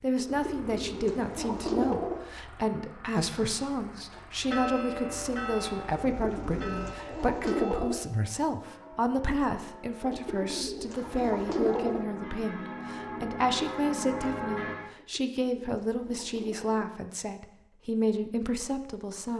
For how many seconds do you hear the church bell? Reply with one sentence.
The church bell can be heard for 11 seconds in total.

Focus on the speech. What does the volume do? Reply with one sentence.
The loudness of the speech stays about the same.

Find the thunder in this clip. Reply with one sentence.
You can't hear the thunder here.